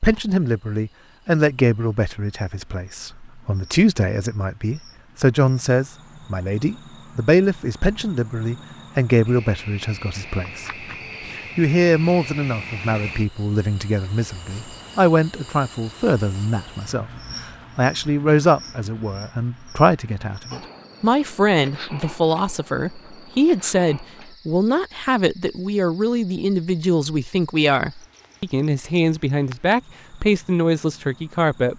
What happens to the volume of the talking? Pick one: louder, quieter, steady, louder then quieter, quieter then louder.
steady.